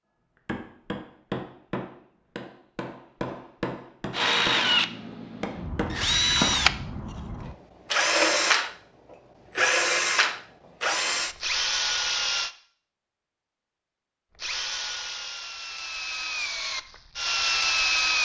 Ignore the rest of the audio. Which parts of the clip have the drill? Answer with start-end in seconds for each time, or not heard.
4.1-12.5, 14.4-18.1.